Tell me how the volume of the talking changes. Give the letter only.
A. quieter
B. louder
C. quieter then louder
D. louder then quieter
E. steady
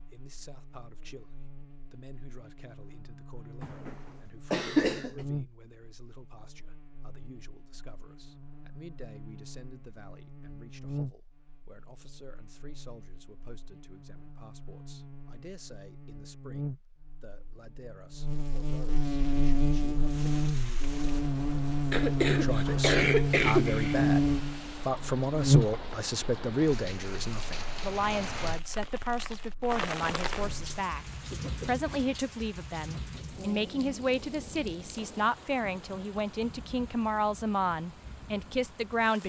B.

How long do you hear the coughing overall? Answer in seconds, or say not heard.
4 s.